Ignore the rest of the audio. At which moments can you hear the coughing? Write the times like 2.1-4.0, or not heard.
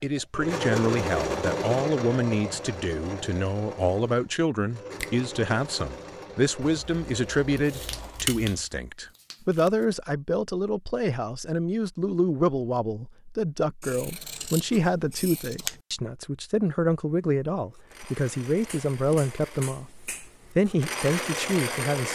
not heard.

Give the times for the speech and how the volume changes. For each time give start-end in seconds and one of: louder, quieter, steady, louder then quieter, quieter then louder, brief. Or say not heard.
0.0-19.9 steady
20.5-22.1 brief.